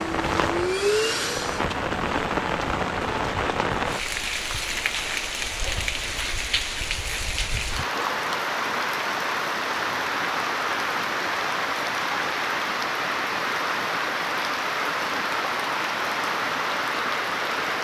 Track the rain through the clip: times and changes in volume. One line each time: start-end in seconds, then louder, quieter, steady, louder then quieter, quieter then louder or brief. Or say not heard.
0.0-17.7 steady.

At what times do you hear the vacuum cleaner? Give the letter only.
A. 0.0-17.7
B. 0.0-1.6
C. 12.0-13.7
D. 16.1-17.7
B.